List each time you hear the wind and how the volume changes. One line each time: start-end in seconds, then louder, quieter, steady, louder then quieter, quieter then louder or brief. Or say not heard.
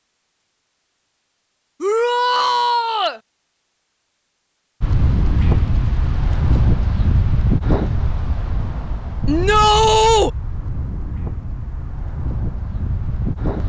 4.8-13.6 quieter.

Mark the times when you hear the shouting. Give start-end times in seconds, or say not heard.
1.8-3.2, 9.2-10.3.